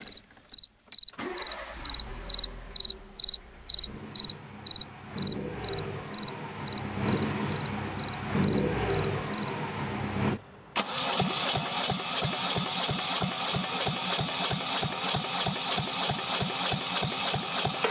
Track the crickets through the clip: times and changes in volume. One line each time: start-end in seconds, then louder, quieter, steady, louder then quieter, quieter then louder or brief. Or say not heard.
0.0-9.5 louder then quieter.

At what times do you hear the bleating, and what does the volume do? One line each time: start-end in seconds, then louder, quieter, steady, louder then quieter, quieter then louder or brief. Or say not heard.
not heard.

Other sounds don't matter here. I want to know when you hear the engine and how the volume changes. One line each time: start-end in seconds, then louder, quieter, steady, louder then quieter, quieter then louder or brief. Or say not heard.
0.0-17.8 louder.